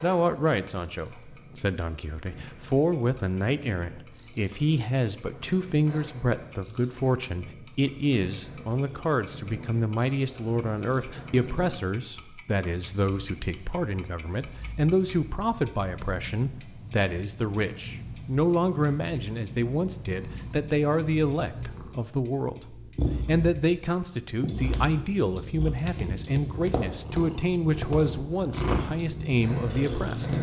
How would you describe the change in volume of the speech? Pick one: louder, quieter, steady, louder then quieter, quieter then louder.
steady.